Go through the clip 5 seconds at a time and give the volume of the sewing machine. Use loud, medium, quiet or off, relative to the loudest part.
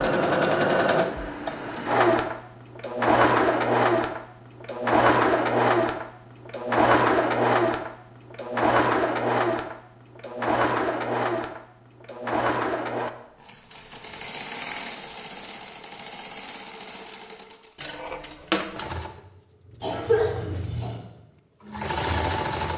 loud, loud, medium, quiet, medium.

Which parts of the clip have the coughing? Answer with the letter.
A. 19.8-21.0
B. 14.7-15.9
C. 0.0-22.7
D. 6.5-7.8
A.